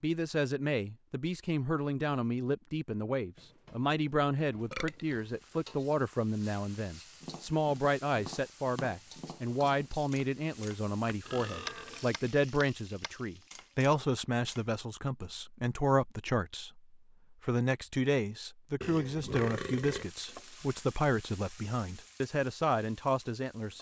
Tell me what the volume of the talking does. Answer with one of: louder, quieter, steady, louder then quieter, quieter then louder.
steady.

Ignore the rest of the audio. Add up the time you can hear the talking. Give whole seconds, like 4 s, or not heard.
24 s.